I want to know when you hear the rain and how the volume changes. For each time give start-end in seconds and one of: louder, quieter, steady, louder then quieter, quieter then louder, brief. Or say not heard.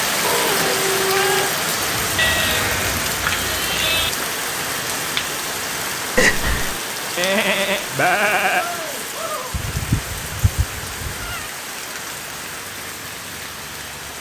0.0-14.1 quieter.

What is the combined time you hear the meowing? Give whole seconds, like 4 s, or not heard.
4 s.